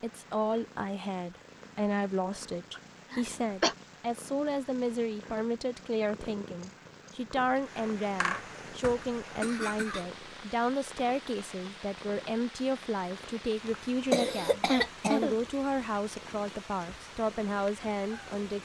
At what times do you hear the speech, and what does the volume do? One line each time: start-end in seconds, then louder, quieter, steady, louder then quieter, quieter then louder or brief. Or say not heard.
0.0-18.5 steady.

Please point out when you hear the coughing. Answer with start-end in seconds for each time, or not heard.
2.8-3.8, 8.2-10.1, 14.1-15.3.